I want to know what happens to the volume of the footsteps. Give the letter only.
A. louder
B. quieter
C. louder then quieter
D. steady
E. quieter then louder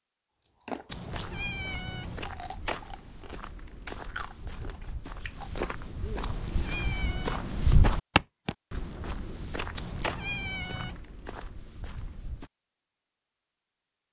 C.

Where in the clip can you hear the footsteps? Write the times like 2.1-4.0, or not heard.
1.1-12.5.